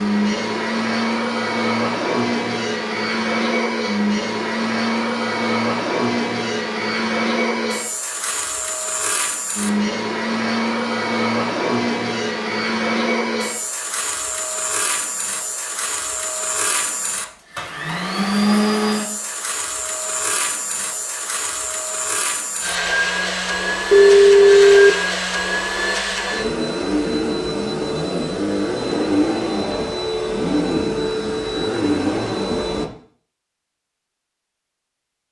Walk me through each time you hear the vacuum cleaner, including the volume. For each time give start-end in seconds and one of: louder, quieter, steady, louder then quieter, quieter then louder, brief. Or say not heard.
0.0-32.9 steady.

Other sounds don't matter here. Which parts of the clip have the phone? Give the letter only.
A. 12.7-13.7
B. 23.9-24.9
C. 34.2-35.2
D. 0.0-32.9
B.